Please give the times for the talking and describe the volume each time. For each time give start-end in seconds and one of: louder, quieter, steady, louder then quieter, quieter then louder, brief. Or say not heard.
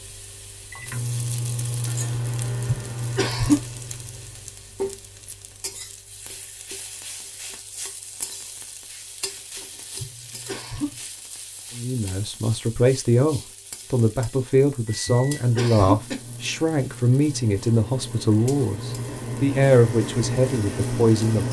11.8-21.4 steady.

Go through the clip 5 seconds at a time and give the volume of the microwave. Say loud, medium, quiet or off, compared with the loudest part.
loud, off, off, medium, loud.